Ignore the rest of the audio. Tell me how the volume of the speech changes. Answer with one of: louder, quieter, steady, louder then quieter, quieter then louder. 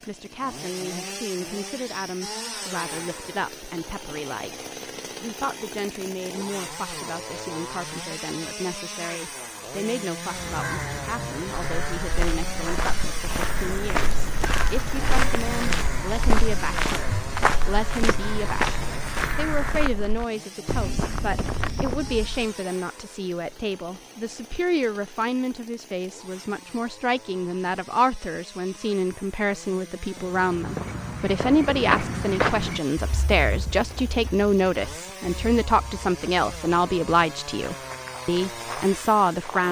louder.